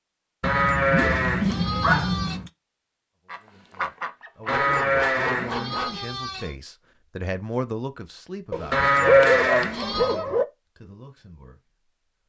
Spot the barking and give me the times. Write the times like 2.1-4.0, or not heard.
0.4-2.5, 4.5-6.0, 8.5-10.4.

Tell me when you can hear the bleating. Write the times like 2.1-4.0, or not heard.
0.4-2.4, 4.5-6.5, 8.7-10.2.